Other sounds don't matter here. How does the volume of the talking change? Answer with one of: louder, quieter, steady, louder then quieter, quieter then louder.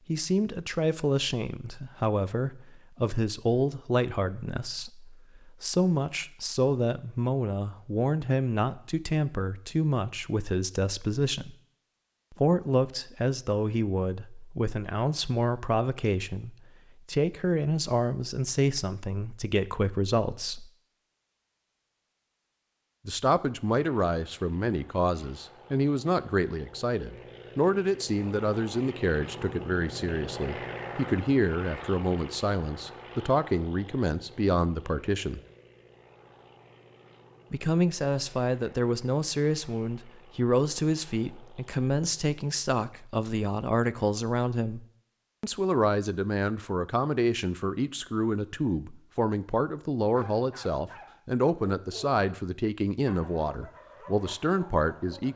steady.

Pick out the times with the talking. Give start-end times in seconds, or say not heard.
0.1-11.6, 12.3-20.6, 23.1-35.4, 37.5-55.3.